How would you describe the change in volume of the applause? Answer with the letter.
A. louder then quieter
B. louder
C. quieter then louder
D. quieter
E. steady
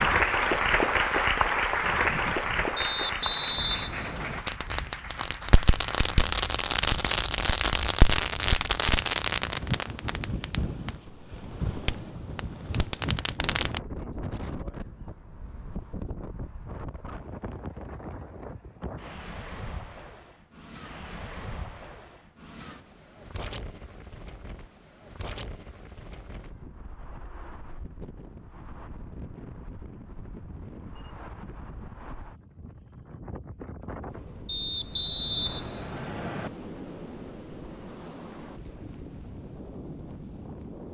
D.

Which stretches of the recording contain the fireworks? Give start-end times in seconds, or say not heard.
4.5-10.9, 11.7-13.8.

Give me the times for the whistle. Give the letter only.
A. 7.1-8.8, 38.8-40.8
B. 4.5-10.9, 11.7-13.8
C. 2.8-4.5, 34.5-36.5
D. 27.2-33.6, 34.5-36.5
C.